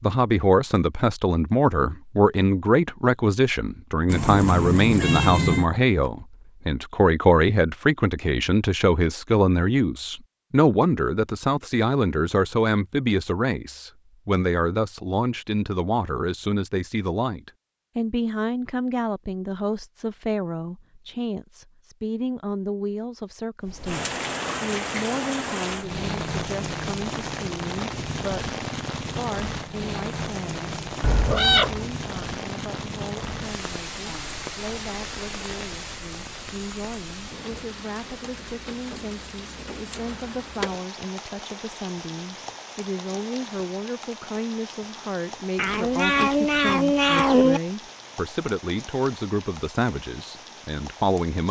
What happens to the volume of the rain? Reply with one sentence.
The volume of the rain goes down.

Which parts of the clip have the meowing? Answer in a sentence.
The meowing can be heard from 4.0 to 5.7 s, from 31.0 to 31.9 s and from 45.5 to 47.6 s.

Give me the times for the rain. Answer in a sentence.
The rain can be heard from 23.6 to 51.4 s.